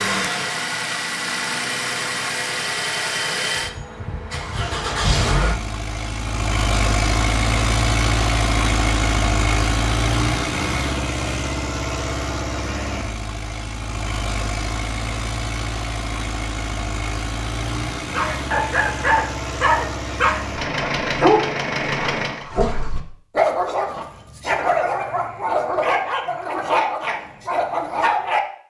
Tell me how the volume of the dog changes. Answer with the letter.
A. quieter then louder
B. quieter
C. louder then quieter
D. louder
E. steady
E.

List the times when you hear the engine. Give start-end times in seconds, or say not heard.
0.0-22.5.